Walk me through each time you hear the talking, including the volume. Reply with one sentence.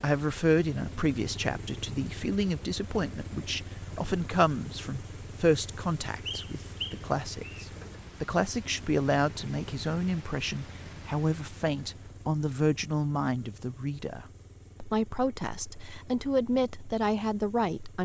You can hear the talking from 0.0 to 18.0 s, at a steady volume.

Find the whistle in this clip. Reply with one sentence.
You can hear the whistle from 6.2 to 7.7 s.